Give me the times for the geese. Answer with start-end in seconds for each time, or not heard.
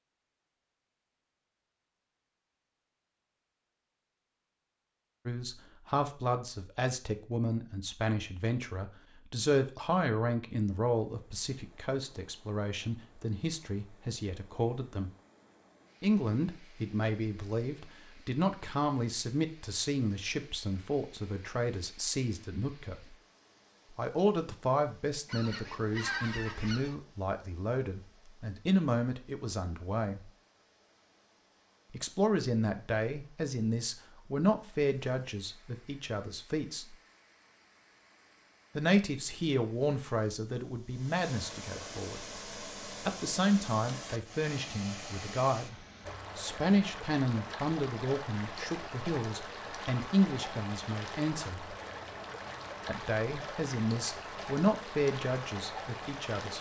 25.2-26.9.